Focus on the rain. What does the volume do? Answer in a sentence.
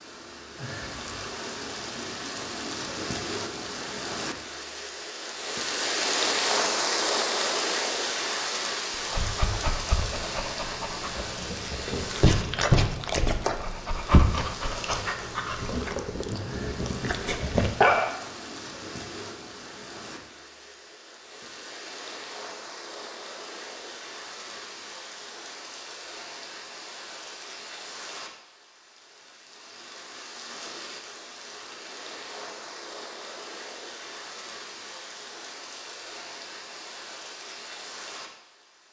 The loudness of the rain goes down.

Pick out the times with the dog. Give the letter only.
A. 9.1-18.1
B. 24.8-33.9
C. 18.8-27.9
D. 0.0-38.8
A.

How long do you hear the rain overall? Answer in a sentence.
You can hear the rain for 39 seconds altogether.